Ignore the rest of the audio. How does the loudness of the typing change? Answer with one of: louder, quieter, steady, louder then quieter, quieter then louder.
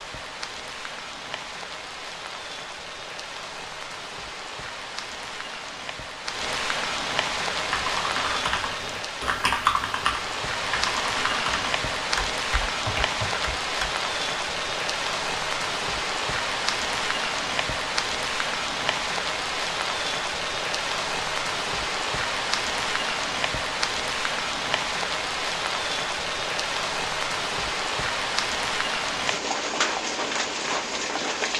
louder then quieter.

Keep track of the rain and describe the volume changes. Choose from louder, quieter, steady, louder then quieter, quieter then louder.
louder.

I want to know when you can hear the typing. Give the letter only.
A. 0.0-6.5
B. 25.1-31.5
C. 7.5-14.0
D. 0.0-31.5
C.